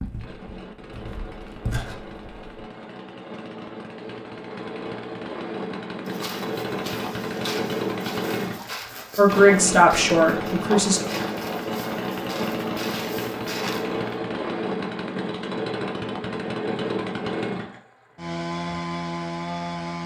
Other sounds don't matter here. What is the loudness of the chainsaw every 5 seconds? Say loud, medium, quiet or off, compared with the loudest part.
medium, loud, loud, loud.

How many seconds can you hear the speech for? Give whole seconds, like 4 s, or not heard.
2 s.